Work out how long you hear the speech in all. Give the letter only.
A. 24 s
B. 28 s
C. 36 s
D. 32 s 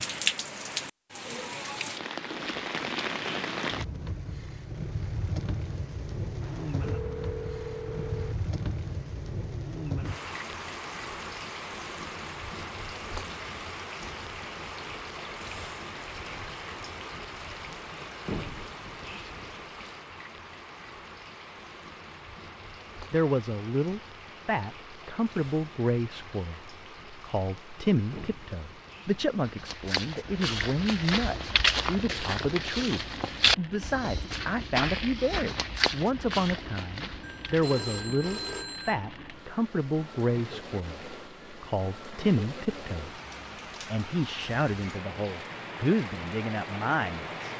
A.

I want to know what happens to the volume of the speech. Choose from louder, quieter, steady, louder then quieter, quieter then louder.
steady.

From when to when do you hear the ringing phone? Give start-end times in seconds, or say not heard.
6.4-8.3, 37.2-39.0.